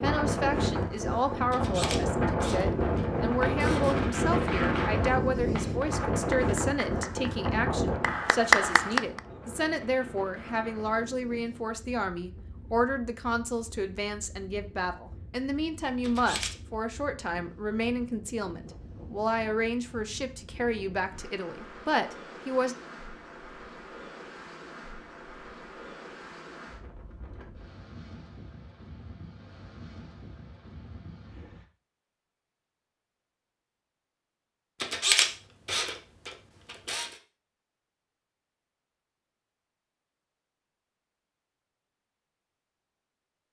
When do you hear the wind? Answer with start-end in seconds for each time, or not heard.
0.0-31.6.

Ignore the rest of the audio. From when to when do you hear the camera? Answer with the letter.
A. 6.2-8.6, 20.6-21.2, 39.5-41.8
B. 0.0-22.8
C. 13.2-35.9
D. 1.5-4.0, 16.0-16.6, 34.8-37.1
D.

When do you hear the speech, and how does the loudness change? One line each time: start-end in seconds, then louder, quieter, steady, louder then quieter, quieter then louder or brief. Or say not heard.
0.0-22.8 steady.